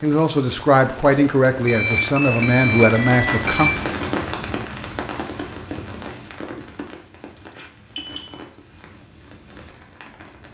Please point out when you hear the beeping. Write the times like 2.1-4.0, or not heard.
1.6-3.7, 7.3-8.3.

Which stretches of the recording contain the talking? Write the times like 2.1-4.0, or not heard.
0.0-3.7.